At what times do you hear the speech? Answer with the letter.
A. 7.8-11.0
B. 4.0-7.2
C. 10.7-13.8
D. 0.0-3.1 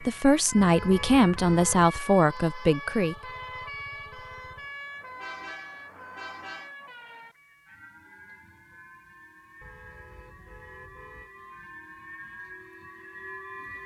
D.